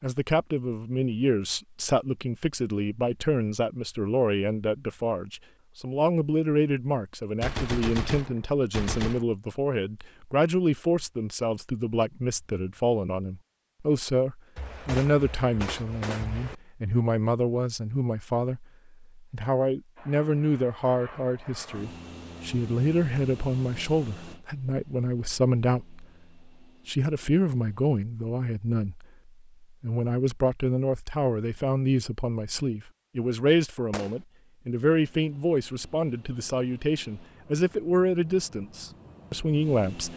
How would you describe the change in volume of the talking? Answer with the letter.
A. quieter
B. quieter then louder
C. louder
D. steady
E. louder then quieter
D.